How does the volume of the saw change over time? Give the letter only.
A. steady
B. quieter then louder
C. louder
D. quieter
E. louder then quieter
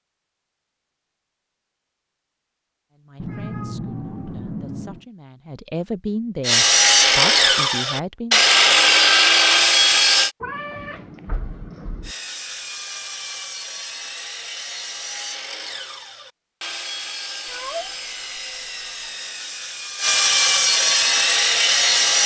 B.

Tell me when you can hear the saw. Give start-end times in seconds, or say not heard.
6.4-10.3, 12.0-22.2.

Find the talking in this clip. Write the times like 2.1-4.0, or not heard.
2.9-8.4.